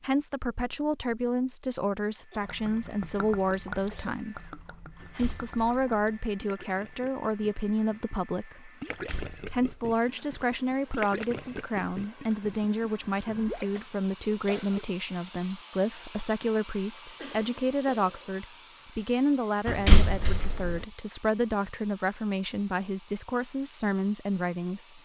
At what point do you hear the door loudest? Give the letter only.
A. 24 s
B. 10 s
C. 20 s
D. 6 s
C.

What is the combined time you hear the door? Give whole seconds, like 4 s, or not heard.
3 s.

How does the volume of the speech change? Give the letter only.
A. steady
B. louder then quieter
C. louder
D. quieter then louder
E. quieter
A.